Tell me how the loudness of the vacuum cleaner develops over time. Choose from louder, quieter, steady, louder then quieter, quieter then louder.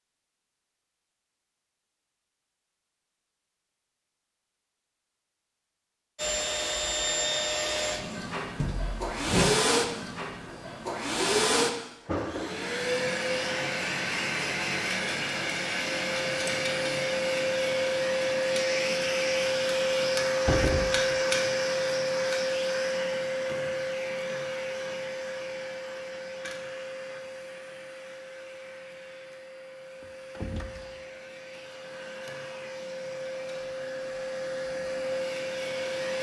quieter.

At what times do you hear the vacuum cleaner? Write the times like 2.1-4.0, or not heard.
6.2-36.1.